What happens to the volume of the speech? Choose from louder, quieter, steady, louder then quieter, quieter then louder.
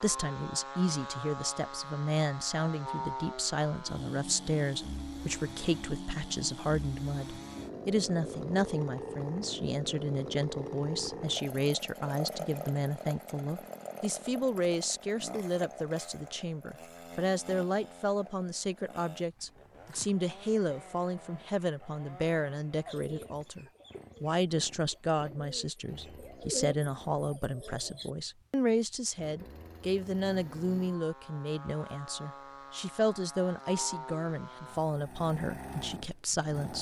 steady.